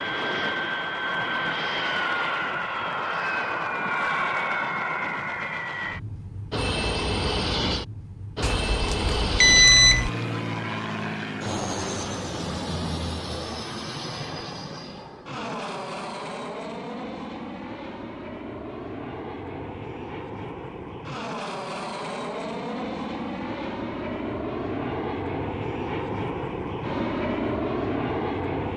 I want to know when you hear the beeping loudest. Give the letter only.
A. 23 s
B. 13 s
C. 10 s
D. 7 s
C.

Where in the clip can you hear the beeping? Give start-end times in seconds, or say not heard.
8.4-10.1.